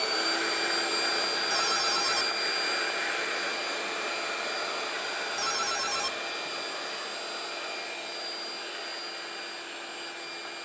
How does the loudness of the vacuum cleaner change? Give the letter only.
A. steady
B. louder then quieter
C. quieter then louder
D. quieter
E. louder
D.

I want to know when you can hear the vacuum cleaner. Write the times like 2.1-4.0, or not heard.
0.0-10.6.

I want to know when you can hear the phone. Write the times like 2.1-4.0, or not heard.
1.5-2.3, 5.3-6.2.